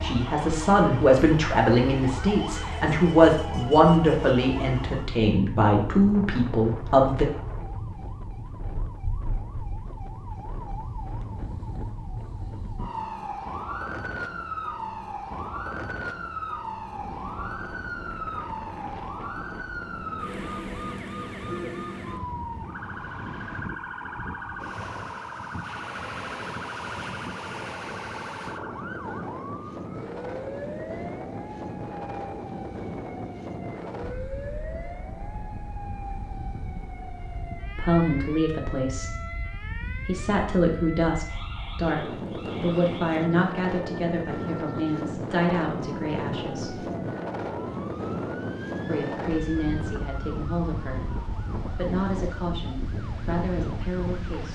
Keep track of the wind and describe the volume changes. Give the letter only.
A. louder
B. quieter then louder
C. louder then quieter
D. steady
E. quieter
A.